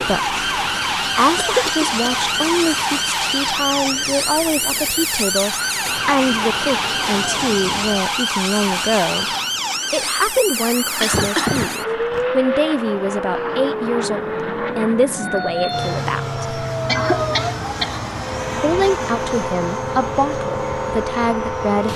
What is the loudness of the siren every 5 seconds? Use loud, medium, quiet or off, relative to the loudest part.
loud, loud, loud, medium, medium.